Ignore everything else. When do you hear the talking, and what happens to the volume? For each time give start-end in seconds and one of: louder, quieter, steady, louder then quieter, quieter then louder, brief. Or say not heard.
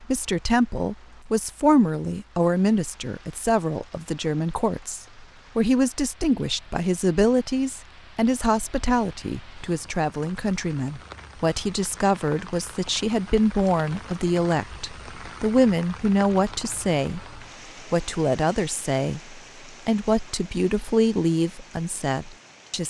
0.0-22.8 steady.